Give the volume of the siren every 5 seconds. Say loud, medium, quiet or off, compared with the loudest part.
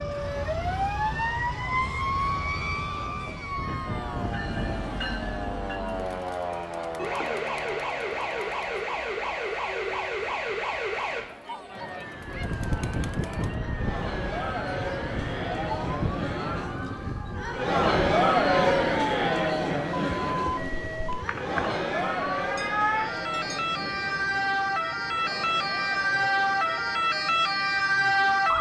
medium, medium, medium, quiet, medium, loud.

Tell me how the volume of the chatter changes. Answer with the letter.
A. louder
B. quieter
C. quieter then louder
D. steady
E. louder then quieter
E.